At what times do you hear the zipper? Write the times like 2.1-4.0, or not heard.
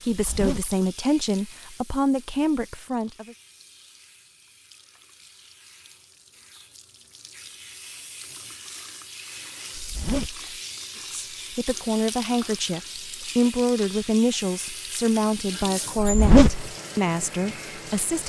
0.1-0.8, 9.8-10.5, 15.9-16.6.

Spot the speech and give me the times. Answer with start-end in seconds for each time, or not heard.
0.0-3.4, 11.1-18.2.